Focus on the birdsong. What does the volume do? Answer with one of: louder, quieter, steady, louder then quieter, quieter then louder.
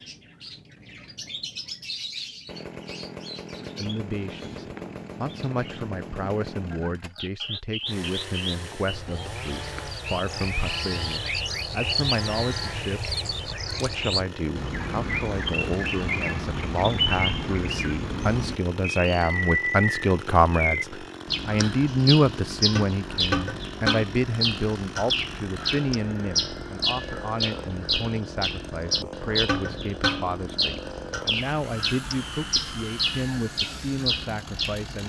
louder.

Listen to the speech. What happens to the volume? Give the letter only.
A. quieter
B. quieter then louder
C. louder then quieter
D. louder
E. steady
C.